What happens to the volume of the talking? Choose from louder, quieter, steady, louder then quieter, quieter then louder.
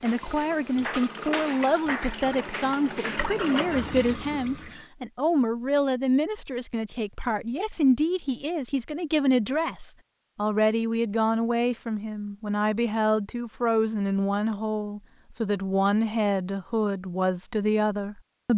steady.